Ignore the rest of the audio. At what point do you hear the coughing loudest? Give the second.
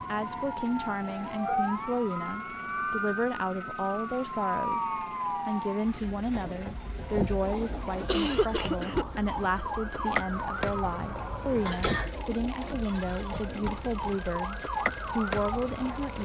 8 s.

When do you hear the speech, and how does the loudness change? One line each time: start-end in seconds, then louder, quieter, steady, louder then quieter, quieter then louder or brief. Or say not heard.
0.1-16.2 steady.